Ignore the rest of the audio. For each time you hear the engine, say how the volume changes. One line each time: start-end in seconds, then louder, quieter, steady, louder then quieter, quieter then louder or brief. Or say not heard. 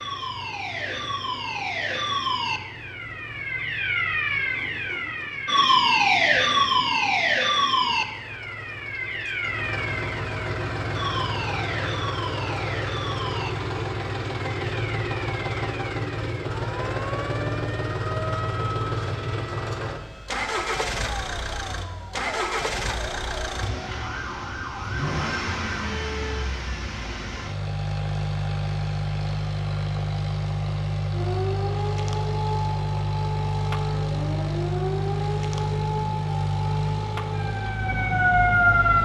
0.0-38.9 louder.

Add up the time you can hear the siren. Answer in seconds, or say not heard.
34 s.